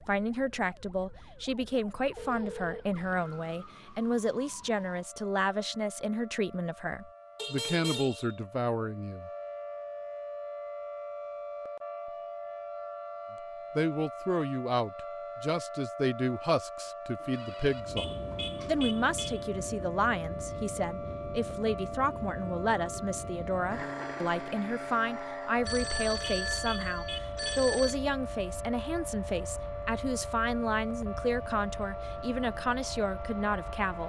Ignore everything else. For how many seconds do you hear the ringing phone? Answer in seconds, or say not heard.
5 s.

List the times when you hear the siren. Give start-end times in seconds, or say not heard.
0.0-34.0.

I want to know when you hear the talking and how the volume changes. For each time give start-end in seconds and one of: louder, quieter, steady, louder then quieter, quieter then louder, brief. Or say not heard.
0.1-9.3 steady
13.8-34.0 steady.